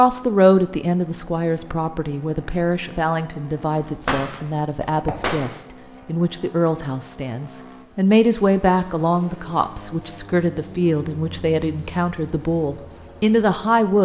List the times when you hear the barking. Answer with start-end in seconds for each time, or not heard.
not heard.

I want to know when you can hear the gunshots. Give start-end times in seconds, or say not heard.
3.8-5.5.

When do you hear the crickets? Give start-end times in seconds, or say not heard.
not heard.